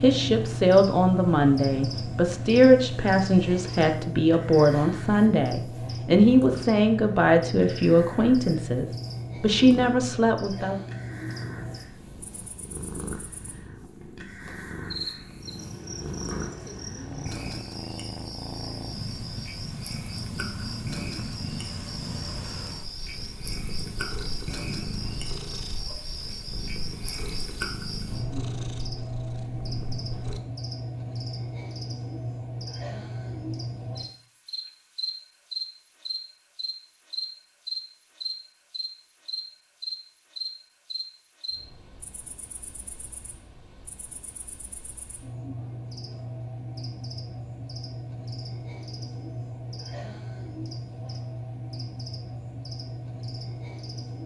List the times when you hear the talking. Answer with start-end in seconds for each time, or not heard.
0.0-10.8.